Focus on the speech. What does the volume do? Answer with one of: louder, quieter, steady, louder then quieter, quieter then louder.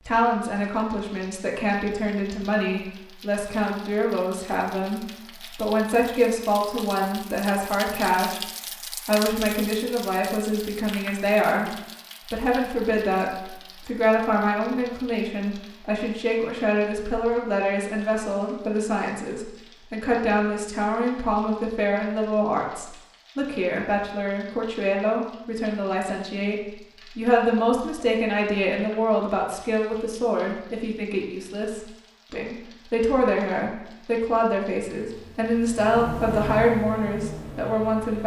steady.